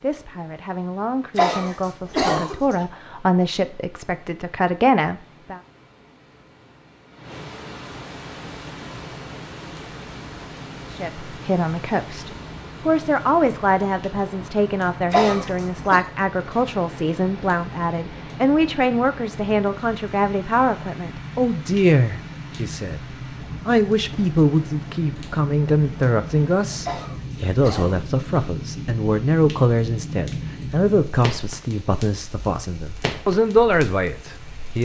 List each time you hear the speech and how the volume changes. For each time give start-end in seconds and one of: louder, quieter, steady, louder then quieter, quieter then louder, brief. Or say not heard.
0.0-5.6 louder
10.9-23.0 steady
23.6-34.7 steady.